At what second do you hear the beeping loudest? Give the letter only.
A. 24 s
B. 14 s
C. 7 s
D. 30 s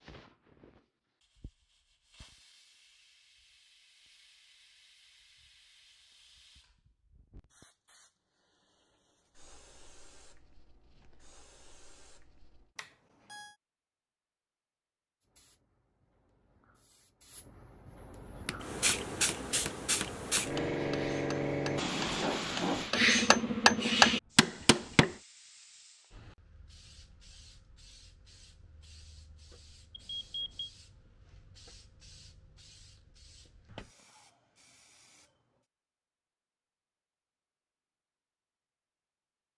D.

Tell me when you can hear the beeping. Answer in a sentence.
You can hear the beeping from 12.8 to 13.5 s and from 29.9 to 30.7 s.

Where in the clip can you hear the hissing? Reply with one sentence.
The hissing can be heard from 0.0 to 12.7 s and from 15.2 to 35.6 s.